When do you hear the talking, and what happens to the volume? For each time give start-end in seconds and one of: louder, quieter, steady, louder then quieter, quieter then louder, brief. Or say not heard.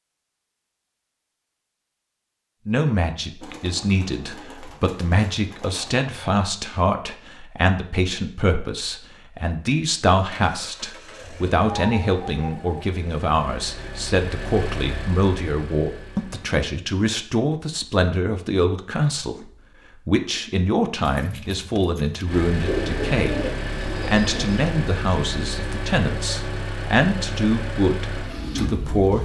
2.6-29.2 steady.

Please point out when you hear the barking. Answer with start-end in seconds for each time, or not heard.
not heard.